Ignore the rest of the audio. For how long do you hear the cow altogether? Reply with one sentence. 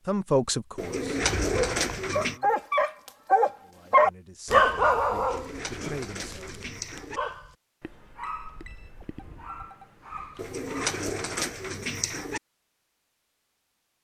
The cow can't be heard in this clip.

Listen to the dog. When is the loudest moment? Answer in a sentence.
The loudest moment of the dog is at 5 seconds.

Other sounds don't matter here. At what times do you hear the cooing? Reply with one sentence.
The cooing can be heard from 0.8 to 2.4 s, from 5.2 to 7.2 s and from 10.3 to 12.4 s.